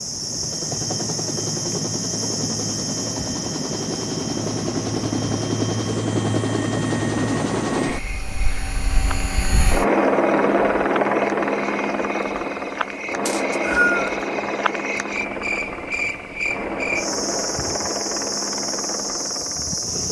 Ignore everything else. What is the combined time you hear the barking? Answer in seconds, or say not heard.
not heard.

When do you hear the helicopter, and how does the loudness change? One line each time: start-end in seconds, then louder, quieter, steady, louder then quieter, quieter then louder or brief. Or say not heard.
0.0-20.0 louder then quieter.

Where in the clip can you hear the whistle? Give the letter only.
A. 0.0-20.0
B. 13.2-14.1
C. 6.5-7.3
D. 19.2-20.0
B.